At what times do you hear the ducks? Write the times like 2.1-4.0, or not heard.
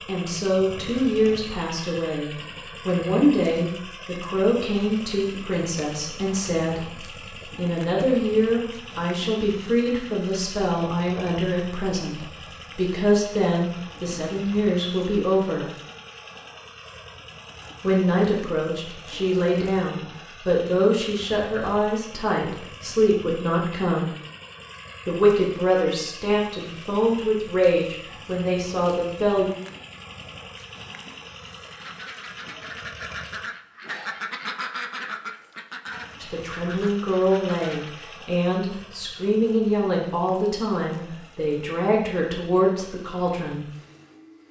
31.7-38.0.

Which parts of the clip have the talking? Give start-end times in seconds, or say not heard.
0.1-15.7, 17.8-24.1, 25.1-29.4, 36.2-43.6.